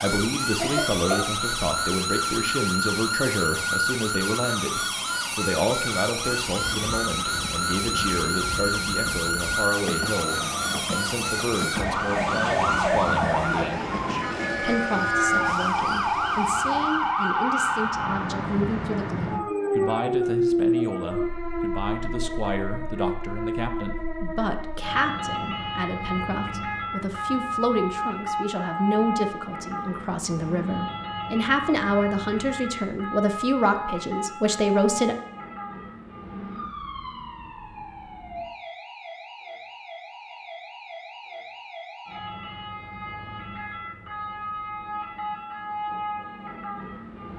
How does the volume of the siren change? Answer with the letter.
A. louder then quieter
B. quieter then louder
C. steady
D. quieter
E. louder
D.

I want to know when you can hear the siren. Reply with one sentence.
The siren can be heard from 0.0 to 47.3 s.